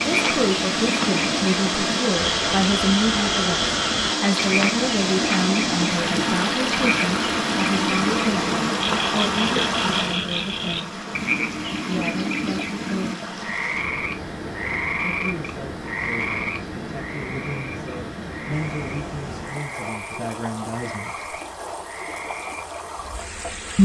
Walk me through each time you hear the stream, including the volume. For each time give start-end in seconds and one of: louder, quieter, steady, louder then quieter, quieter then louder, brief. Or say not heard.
0.0-23.8 quieter.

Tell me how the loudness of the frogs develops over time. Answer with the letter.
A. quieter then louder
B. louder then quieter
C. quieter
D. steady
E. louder
C.